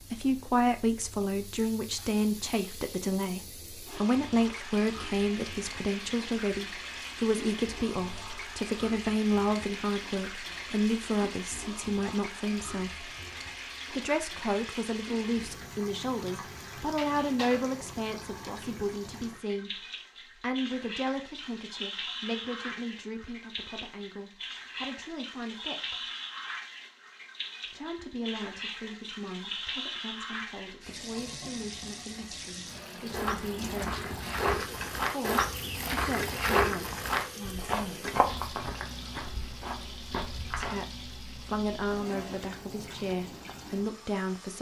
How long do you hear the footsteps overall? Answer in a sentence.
You can hear the footsteps for 8 seconds altogether.